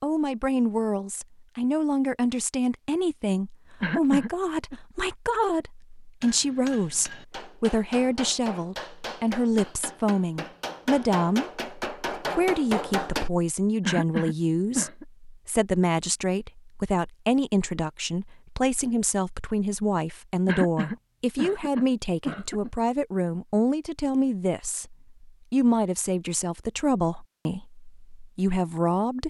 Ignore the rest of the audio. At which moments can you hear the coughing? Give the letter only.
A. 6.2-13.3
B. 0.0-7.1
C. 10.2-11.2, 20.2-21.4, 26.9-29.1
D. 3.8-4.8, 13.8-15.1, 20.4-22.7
D.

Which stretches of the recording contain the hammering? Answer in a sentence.
You can hear the hammering from 6.2 to 13.3 s.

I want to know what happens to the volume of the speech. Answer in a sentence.
The loudness of the speech stays about the same.